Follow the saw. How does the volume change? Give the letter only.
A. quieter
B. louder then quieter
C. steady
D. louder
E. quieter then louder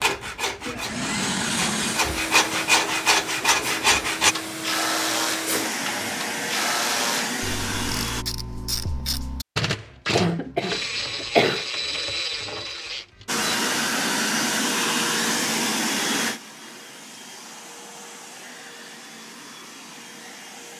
D.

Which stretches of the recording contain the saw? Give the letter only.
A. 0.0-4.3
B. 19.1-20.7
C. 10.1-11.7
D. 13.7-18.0
A.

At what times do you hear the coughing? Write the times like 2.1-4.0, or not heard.
10.1-11.7.